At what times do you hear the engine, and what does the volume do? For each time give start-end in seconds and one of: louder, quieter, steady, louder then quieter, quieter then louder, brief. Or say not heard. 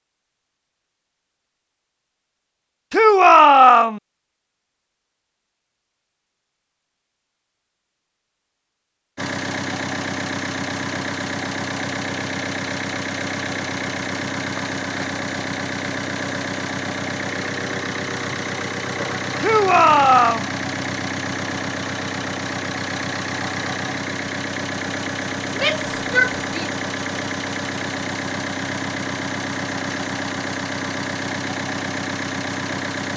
9.2-33.1 steady.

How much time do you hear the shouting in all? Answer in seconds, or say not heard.
3 s.